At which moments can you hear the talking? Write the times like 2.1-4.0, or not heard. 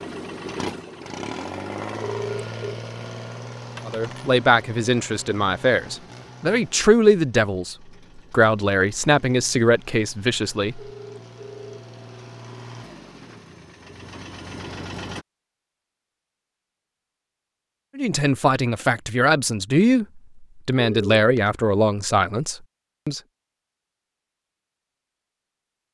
3.9-10.8, 17.9-23.2.